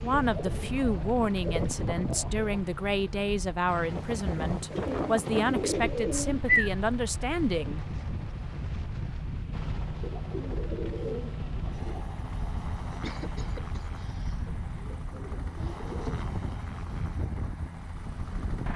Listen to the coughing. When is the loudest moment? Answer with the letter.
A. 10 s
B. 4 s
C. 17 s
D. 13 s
D.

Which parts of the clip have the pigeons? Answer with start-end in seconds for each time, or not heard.
0.2-2.6, 4.7-6.7, 10.0-12.1, 14.4-16.2.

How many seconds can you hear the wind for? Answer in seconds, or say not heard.
19 s.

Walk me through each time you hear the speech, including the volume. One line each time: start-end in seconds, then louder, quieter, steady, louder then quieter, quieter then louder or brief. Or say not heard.
0.0-7.8 steady.